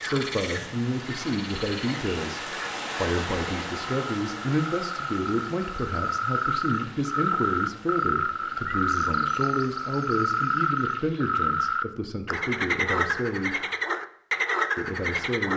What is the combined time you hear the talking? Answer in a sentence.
The talking can be heard for 14 seconds in total.